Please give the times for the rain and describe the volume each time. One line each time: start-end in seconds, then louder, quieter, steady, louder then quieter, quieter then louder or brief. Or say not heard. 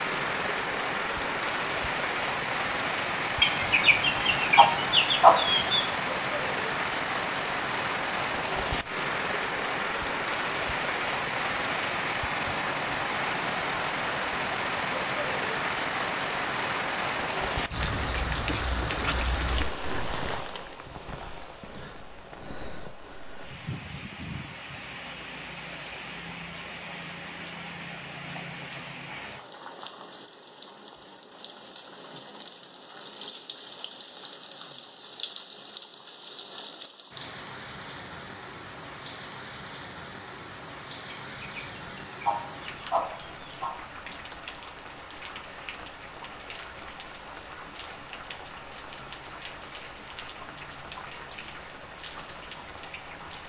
0.0-53.4 quieter.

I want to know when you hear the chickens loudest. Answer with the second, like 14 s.
5 s.